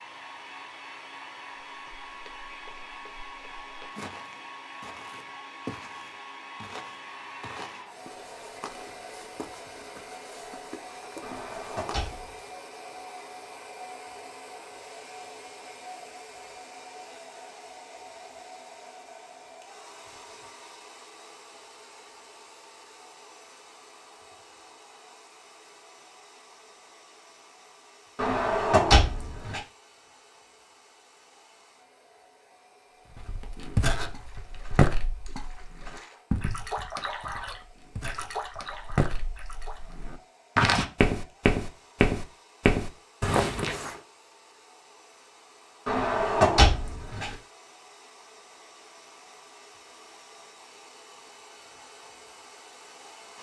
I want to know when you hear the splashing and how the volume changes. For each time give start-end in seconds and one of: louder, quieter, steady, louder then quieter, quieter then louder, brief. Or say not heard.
34.0-40.0 louder then quieter.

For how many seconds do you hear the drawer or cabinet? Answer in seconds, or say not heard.
4 s.